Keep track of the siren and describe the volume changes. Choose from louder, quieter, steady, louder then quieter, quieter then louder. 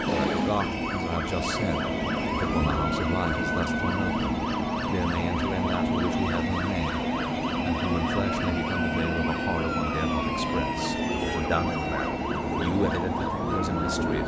steady.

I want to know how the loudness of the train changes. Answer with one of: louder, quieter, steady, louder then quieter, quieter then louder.
steady.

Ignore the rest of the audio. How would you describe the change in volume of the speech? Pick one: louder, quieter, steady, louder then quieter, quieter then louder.
steady.